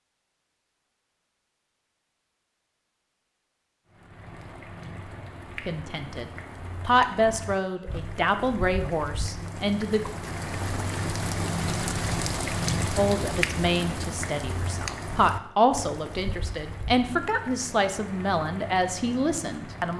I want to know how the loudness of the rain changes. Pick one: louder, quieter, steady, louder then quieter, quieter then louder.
louder then quieter.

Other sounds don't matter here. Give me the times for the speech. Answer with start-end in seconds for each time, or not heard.
5.7-10.1, 12.9-19.9.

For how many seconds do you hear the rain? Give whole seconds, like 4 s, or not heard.
16 s.